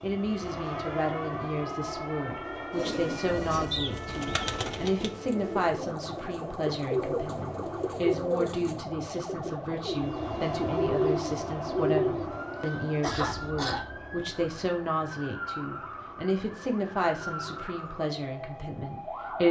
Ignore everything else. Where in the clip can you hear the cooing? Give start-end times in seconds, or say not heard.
2.7-12.3.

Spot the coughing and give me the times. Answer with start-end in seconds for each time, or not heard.
12.3-13.8.